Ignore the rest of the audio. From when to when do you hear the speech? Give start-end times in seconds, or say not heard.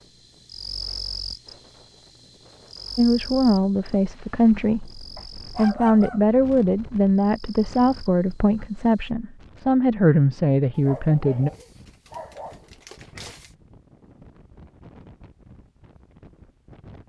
3.0-11.5.